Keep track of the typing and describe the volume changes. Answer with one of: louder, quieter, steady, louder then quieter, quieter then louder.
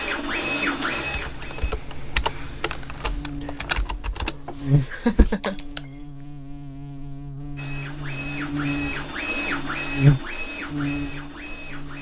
quieter.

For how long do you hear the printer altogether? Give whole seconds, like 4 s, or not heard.
6 s.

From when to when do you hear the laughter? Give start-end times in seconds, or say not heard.
4.9-5.5.